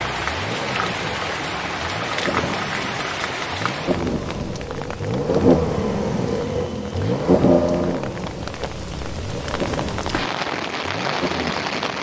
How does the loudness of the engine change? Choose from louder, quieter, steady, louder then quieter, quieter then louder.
louder then quieter.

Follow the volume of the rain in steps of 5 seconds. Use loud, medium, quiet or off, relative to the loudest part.
loud, medium, loud.